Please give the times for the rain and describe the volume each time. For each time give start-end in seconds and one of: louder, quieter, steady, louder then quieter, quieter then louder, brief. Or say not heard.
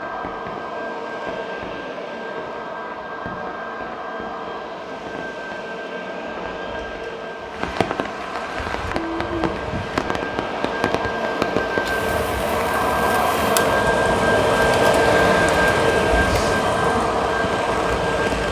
0.0-18.4 louder.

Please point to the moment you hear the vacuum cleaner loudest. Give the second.
15 s.